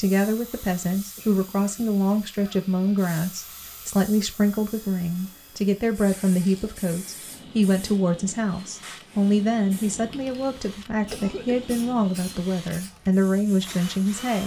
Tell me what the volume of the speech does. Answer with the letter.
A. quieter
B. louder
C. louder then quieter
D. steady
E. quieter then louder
D.